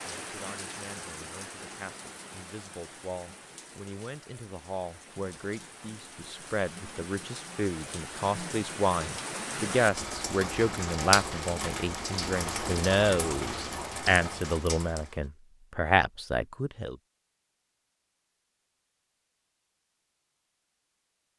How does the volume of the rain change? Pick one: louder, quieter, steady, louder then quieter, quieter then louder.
quieter then louder.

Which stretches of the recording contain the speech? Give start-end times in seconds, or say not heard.
0.1-16.9.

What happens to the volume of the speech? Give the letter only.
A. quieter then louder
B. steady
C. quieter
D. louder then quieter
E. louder
E.